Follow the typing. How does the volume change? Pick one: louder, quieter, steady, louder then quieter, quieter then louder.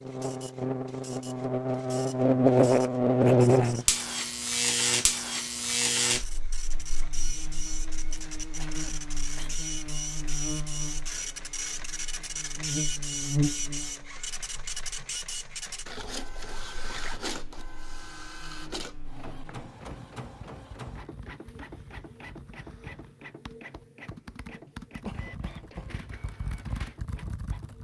louder.